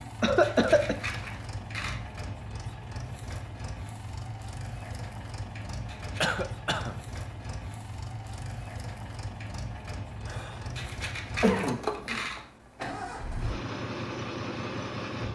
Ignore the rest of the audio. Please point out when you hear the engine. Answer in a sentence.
The engine can be heard from 0.0 to 15.2 s.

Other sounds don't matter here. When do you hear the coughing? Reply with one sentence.
You can hear the coughing from 0.2 to 0.9 s, from 6.2 to 7.0 s and from 10.2 to 12.2 s.